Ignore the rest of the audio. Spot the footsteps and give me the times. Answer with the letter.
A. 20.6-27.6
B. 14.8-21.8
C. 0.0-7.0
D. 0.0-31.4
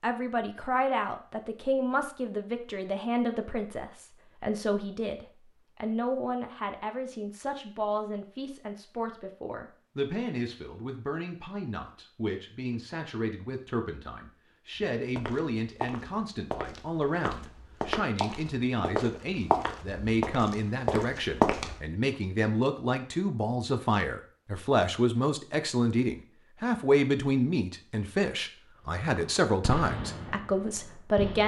B.